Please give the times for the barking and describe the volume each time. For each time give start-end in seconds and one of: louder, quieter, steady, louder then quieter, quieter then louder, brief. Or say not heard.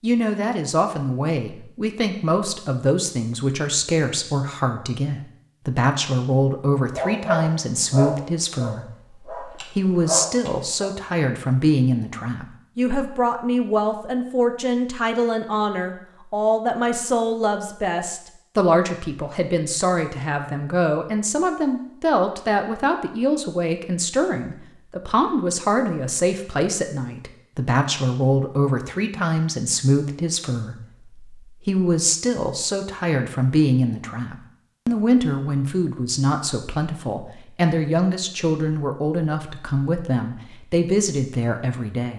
6.9-10.9 quieter then louder.